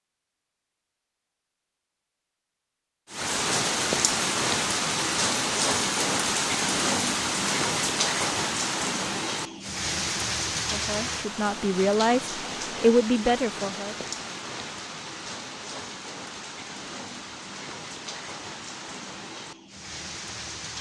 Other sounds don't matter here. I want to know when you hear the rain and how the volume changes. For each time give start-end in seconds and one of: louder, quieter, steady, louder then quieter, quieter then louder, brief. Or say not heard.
3.1-20.7 quieter.